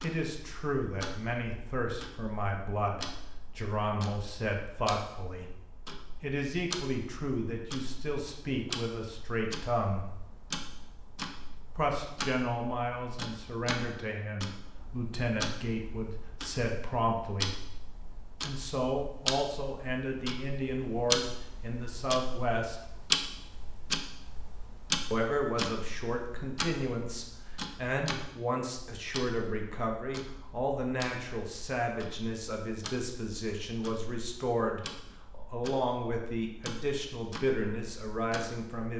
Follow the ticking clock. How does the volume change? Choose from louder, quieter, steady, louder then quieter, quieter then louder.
louder then quieter.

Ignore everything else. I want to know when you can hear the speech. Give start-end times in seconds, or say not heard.
0.0-10.2, 11.8-17.6, 18.4-22.9, 25.1-38.9.